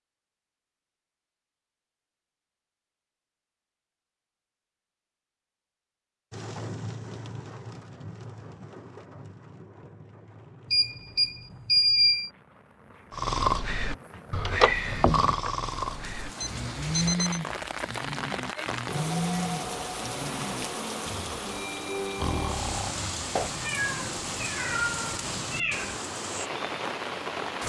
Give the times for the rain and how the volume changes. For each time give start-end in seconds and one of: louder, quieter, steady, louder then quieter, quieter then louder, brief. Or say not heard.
6.3-27.6 quieter then louder.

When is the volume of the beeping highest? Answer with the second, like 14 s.
12 s.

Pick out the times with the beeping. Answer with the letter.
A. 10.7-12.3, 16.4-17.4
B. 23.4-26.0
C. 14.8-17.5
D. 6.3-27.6
A.